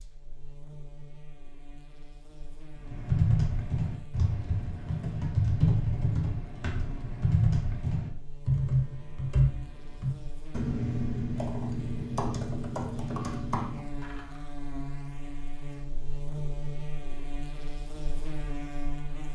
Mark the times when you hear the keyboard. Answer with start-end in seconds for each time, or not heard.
2.8-14.4.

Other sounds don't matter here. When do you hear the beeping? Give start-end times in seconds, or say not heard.
not heard.